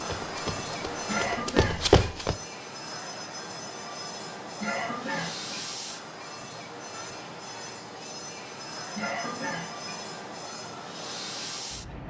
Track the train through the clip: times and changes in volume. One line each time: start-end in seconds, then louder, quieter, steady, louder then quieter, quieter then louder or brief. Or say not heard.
0.0-12.0 steady.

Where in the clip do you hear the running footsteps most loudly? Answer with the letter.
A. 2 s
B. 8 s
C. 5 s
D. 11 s
A.